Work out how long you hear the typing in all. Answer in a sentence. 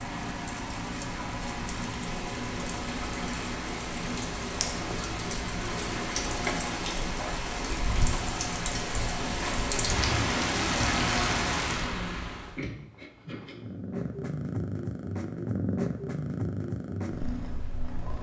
You can't hear the typing here.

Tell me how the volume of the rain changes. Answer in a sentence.
The volume of the rain goes up.